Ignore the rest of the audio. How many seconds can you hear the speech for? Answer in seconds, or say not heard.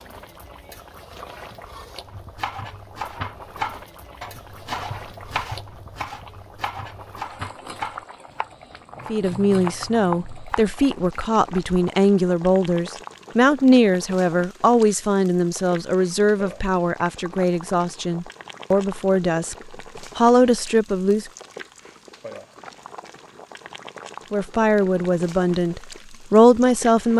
15 s.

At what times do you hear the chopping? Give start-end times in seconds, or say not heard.
2.1-10.9.